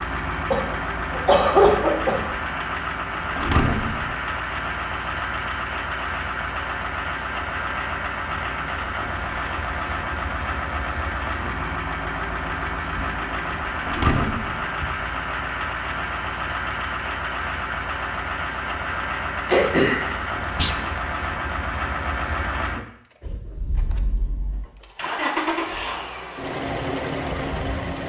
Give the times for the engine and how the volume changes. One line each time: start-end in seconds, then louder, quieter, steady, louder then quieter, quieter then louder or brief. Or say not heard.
0.0-28.0 steady.